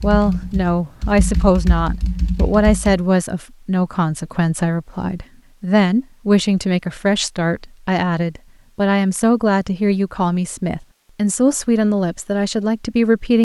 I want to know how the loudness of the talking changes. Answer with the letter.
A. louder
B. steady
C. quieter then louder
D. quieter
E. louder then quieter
B.